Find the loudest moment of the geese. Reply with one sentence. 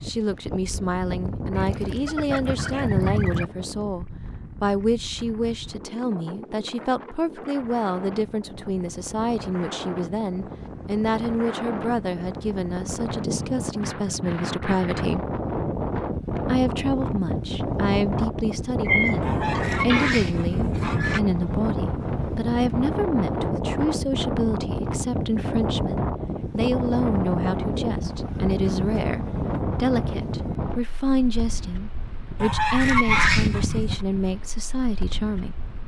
The loudest moment of the geese is at 33 seconds.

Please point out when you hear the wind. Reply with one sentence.
You can hear the wind from 0.0 to 35.8 s.